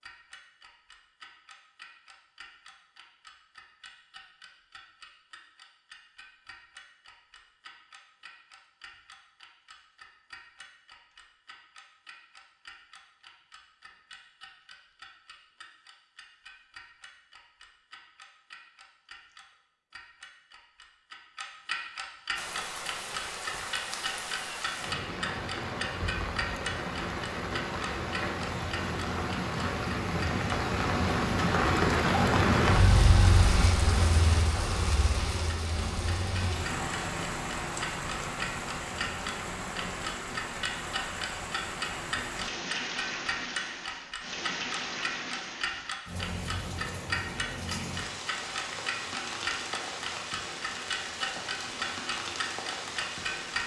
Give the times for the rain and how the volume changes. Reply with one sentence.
You can hear the rain from 22.4 to 53.6 s, getting louder then quieter.